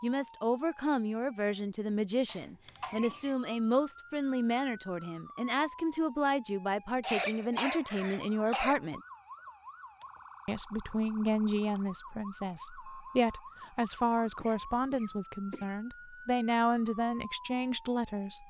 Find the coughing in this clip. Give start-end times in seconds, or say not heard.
2.2-3.4, 7.0-8.8, 14.1-15.7.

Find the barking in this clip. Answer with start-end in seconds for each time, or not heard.
not heard.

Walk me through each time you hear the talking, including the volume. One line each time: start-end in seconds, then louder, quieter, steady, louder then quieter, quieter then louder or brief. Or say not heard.
0.0-9.0 steady
10.4-18.4 steady.